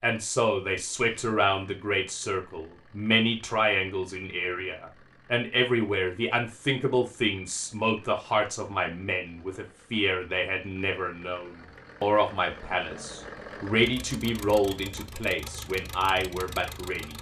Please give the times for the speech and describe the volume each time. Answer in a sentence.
You can hear the speech from 0.0 to 17.1 s, at a steady volume.